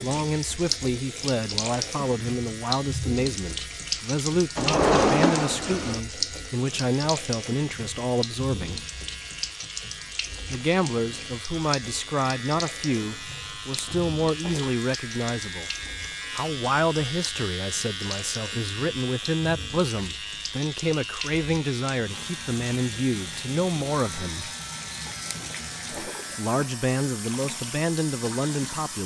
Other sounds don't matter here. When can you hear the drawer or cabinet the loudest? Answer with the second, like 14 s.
5 s.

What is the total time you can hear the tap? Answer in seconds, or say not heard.
29 s.